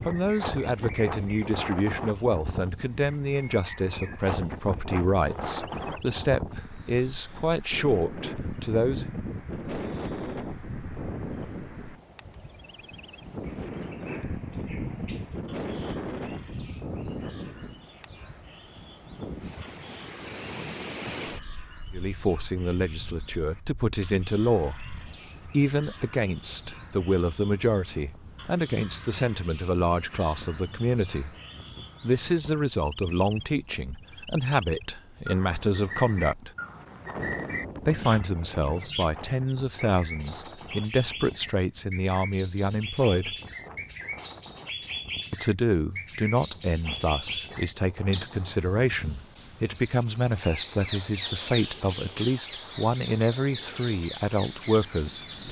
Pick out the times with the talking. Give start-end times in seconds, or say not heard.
0.1-9.1, 21.9-31.3, 32.0-36.5, 37.9-43.4, 45.3-55.4.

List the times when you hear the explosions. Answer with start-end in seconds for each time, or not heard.
not heard.